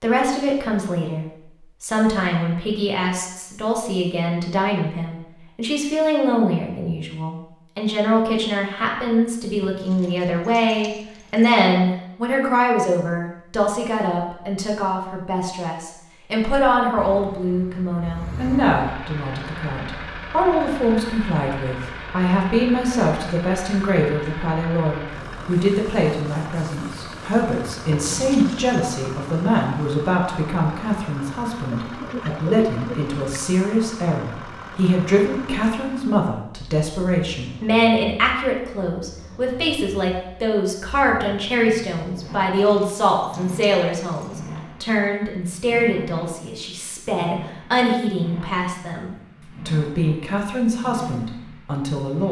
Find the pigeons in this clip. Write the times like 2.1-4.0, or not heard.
31.7-33.3.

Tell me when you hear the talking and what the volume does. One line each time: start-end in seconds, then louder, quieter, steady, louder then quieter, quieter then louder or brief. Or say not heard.
0.0-52.2 steady.